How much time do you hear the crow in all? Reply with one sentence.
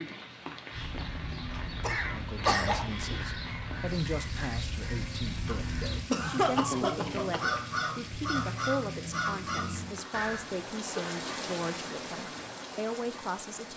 The crow can be heard for 10 seconds in total.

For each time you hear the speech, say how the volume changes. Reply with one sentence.
The speech can be heard from 2.1 to 13.7 s, at a steady volume.